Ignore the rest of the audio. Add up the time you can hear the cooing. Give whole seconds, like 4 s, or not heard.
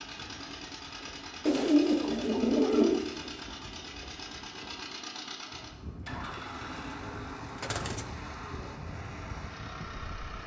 3 s.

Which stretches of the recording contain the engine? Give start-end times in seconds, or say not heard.
0.0-10.4.